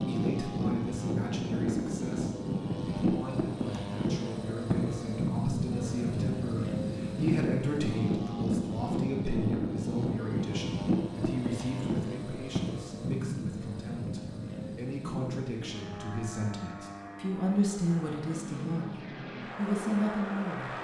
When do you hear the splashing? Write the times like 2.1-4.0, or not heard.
not heard.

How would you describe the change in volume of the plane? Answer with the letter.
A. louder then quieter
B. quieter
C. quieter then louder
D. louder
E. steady
B.